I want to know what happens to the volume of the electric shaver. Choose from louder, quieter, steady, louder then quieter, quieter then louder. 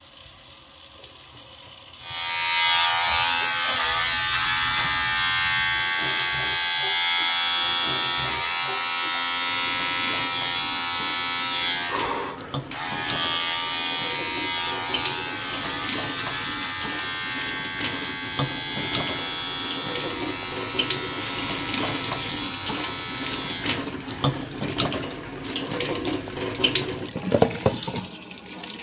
quieter.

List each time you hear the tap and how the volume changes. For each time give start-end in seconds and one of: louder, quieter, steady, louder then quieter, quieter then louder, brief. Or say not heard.
0.0-28.7 louder.